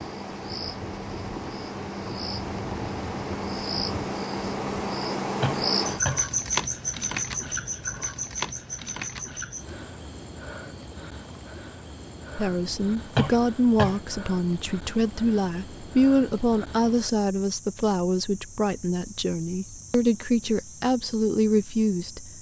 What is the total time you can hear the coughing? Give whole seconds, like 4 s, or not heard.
2 s.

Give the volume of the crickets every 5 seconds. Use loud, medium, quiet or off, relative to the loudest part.
loud, loud, quiet, quiet, quiet.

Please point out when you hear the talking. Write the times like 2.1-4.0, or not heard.
12.3-22.3.